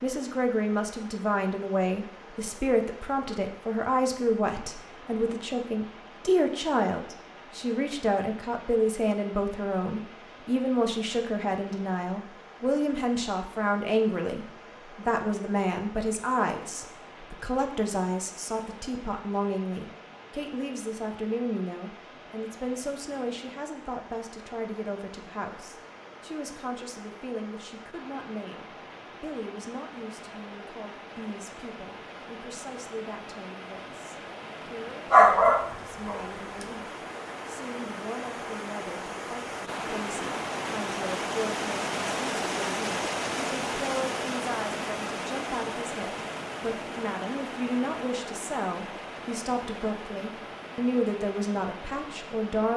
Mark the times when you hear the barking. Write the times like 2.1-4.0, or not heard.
35.1-36.2.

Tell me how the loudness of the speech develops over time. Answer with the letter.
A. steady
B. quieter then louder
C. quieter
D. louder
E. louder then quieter
B.